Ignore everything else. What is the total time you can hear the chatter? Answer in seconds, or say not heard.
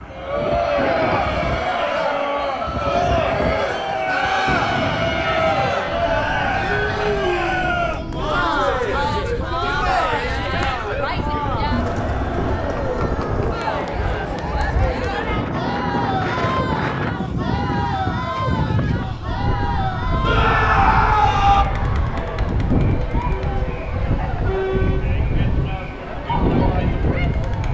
28 s.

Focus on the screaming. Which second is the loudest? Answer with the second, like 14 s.
21 s.